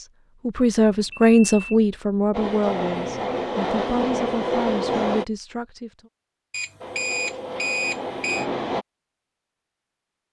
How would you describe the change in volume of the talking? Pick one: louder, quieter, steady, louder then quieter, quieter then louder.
quieter.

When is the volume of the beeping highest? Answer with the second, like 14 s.
8 s.